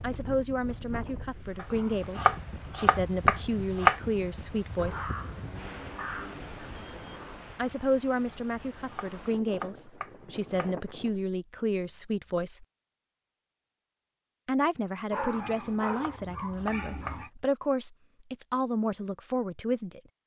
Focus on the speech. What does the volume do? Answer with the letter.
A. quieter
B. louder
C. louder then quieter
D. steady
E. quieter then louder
D.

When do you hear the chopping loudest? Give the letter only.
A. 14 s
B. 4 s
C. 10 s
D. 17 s
B.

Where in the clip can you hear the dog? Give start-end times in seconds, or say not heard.
4.8-7.3, 15.1-17.3.